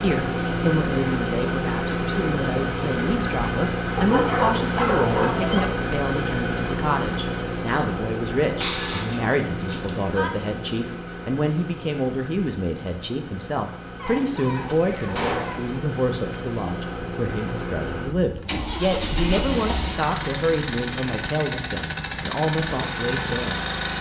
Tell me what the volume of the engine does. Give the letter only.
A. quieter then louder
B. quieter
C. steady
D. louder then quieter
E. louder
A.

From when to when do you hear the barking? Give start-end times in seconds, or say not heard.
4.0-5.7, 13.9-15.8.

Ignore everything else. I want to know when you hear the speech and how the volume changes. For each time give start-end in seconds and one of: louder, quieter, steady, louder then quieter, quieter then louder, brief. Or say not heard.
0.0-23.6 steady.